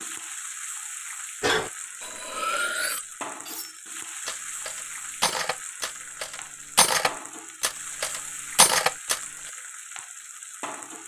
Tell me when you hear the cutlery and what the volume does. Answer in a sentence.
The cutlery can be heard from 1.4 to 9.2 s, getting quieter then louder.